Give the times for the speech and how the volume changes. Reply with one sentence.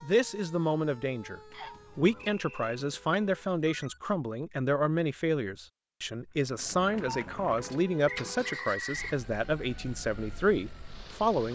The speech can be heard from 0.0 to 11.4 s, at a steady volume.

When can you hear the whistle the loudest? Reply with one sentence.
The volume of the whistle peaks at 9 seconds.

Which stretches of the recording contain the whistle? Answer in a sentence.
You can hear the whistle from 1.5 to 2.8 s and from 8.1 to 9.2 s.